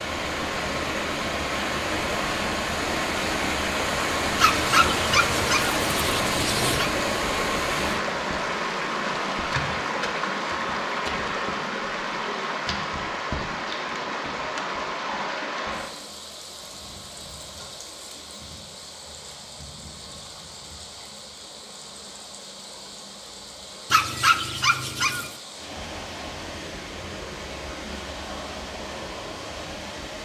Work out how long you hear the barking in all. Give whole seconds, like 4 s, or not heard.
4 s.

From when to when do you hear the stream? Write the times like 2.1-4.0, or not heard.
0.0-30.2.